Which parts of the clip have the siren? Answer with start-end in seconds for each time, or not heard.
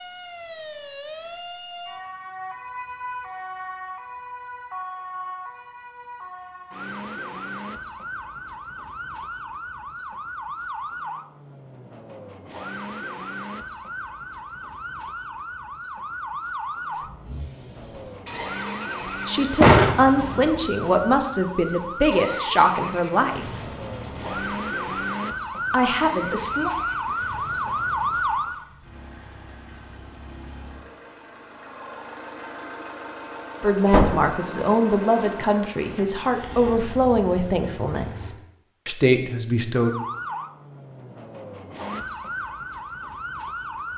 0.0-28.6, 39.8-43.9.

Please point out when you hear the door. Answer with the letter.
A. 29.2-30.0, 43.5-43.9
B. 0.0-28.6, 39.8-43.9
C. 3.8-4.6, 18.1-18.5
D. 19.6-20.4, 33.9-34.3
D.